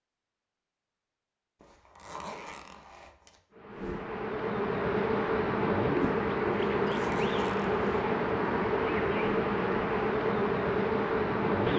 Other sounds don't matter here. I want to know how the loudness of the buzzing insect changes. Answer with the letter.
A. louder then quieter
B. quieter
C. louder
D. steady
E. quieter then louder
D.